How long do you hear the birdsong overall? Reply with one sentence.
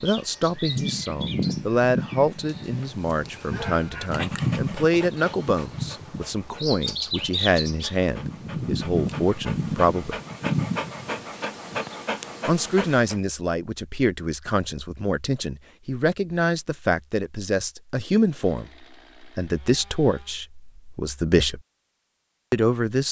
You can hear the birdsong for 12 seconds altogether.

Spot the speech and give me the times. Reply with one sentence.
The speech can be heard from 0.0 to 10.2 s, from 12.4 to 21.6 s and from 22.5 to 23.0 s.